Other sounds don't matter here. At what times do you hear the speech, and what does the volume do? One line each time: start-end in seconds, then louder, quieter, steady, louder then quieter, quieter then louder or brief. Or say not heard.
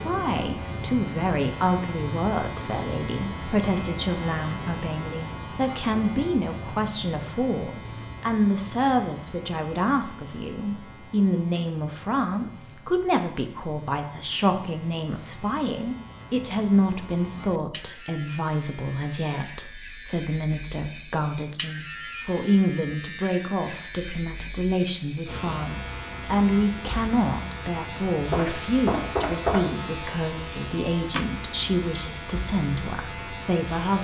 0.0-34.0 steady.